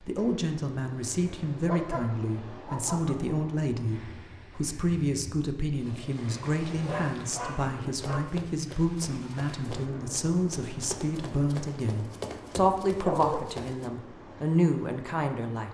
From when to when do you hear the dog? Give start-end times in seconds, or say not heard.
1.6-3.4, 6.7-8.2, 13.0-13.4.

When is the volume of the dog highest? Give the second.
13 s.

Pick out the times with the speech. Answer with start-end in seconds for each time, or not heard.
0.0-15.6.